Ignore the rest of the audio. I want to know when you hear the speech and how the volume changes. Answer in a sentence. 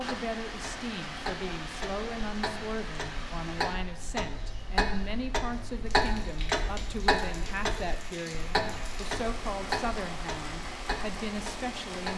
The speech can be heard from 0.0 to 12.1 s, at a steady volume.